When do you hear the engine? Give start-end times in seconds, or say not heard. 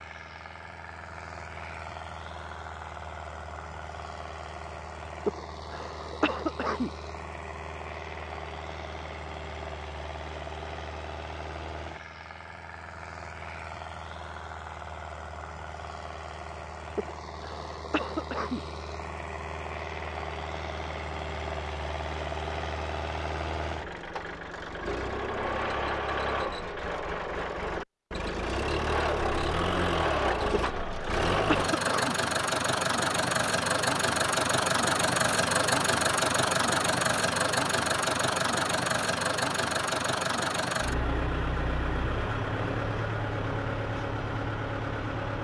0.0-45.4.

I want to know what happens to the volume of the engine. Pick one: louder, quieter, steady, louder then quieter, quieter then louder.
louder.